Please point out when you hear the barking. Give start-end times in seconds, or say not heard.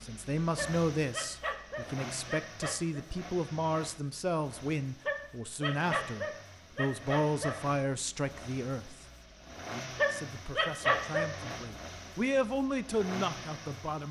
0.6-3.0, 5.0-7.6, 9.9-11.3.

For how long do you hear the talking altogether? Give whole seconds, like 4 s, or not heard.
13 s.